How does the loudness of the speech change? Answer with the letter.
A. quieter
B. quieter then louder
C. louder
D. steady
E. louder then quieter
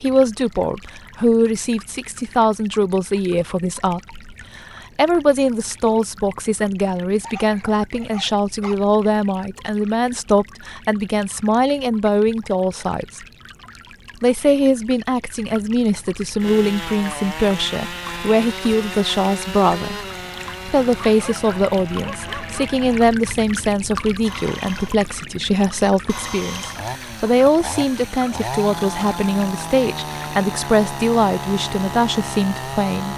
D.